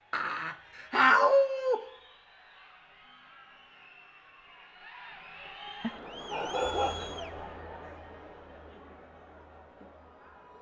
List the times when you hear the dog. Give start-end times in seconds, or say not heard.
0.1-1.8, 5.8-7.1.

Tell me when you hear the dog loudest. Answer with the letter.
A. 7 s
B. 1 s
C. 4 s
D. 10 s
B.